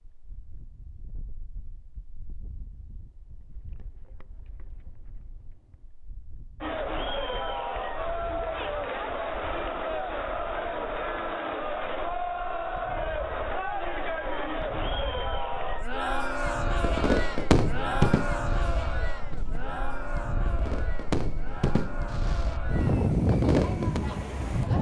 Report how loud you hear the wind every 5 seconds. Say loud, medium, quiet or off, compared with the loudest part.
quiet, quiet, quiet, quiet, loud.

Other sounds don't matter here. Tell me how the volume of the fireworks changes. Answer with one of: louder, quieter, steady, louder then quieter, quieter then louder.
quieter then louder.